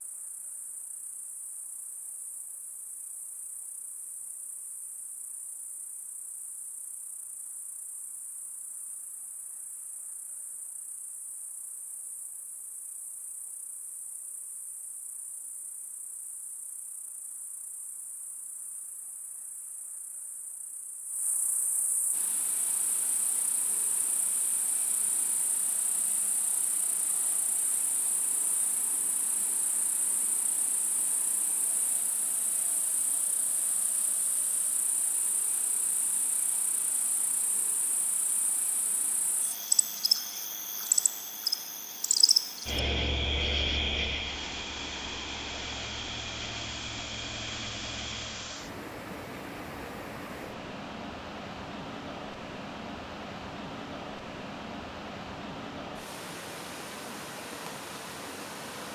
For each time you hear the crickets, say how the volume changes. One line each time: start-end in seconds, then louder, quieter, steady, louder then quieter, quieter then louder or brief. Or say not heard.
0.0-48.6 louder.